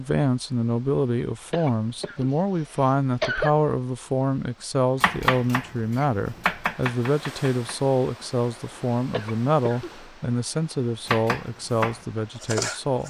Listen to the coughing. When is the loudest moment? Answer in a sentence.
The loudest moment of the coughing is at 3 seconds.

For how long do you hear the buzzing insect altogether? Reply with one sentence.
The buzzing insect can't be heard in this clip.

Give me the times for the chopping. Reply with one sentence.
The chopping can be heard from 5.0 to 7.8 s and from 11.1 to 13.0 s.